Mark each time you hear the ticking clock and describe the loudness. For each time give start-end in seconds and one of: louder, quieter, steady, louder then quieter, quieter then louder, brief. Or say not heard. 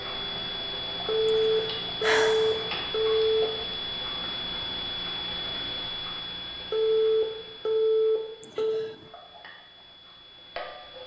0.0-11.0 quieter.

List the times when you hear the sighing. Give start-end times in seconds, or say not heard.
1.2-2.6, 8.4-9.1.